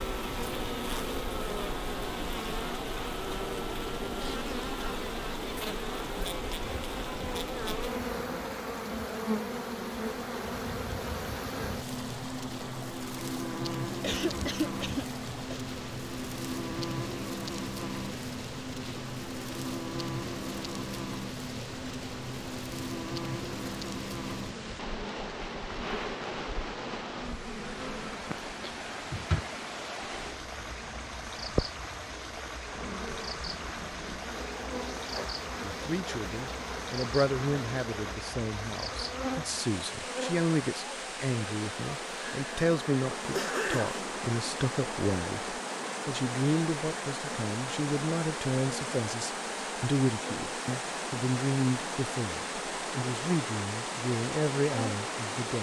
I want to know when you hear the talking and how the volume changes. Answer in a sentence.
You can hear the talking from 35.5 to 55.5 s, at a steady volume.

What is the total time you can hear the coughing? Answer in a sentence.
The coughing can be heard for 3 seconds in total.